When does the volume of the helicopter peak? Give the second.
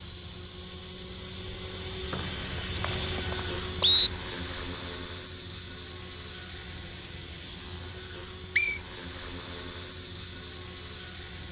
3 s.